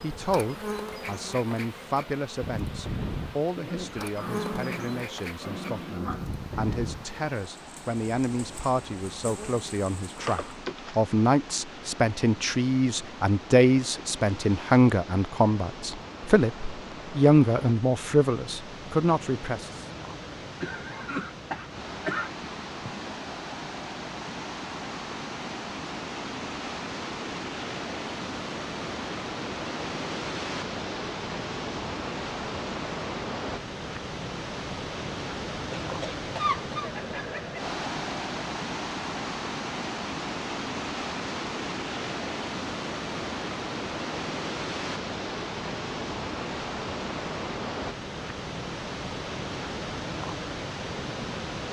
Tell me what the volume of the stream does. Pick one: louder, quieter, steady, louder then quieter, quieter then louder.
louder.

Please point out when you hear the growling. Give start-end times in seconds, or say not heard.
3.5-6.3.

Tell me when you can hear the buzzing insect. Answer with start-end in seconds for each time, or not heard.
0.0-10.6.